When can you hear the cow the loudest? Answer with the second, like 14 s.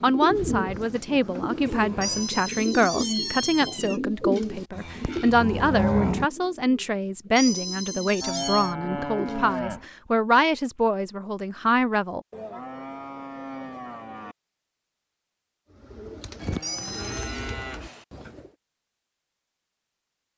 6 s.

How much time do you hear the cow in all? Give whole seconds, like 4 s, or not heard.
9 s.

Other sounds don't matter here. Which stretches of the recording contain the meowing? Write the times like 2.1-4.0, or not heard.
2.0-4.0, 7.3-8.8, 16.6-17.5.